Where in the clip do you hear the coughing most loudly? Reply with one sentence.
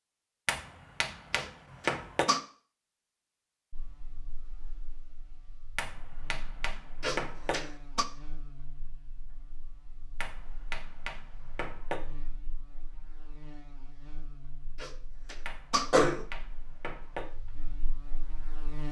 The loudest moment of the coughing is at 16 seconds.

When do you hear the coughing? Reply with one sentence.
You can hear the coughing from 1.3 to 2.4 s, from 7.0 to 8.1 s and from 14.8 to 16.2 s.